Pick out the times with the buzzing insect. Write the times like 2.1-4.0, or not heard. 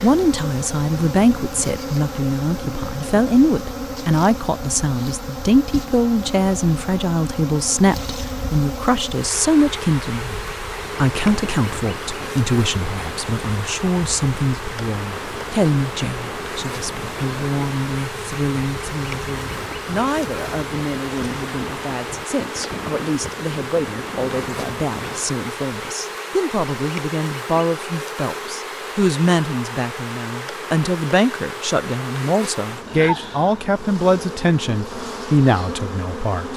0.0-36.5.